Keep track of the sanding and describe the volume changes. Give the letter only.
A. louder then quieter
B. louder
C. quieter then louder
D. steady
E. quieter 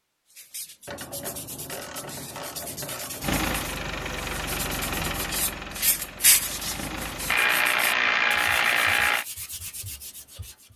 A.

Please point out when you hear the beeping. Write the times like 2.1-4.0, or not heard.
not heard.